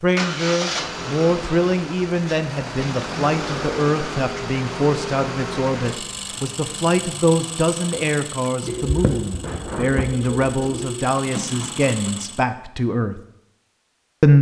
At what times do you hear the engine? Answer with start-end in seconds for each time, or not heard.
0.0-12.4.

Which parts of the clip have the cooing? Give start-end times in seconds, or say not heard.
8.7-11.1.